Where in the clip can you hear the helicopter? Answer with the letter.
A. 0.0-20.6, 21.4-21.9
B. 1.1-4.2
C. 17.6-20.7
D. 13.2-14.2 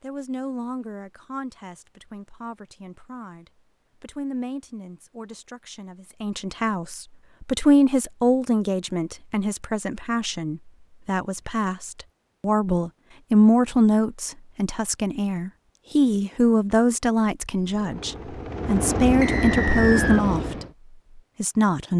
C.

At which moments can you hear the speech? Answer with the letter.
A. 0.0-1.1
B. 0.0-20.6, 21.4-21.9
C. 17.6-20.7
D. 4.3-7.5
B.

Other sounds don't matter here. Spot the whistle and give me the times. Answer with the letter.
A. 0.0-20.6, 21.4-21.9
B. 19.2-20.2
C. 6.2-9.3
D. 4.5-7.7
B.